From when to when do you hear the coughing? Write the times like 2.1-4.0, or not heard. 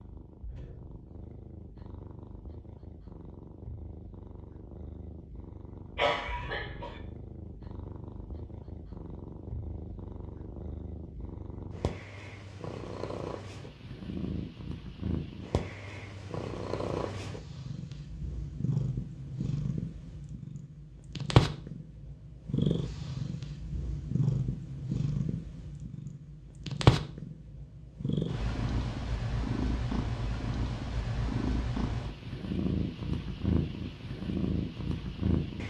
6.0-7.0.